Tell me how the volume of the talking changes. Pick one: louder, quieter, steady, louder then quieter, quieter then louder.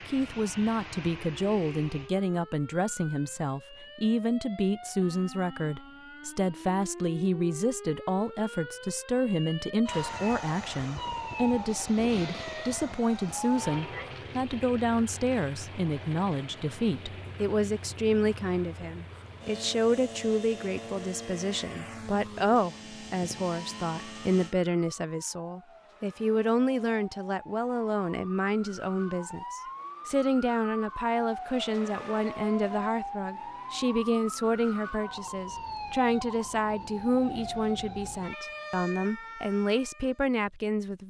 steady.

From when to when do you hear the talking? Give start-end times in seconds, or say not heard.
0.1-41.0.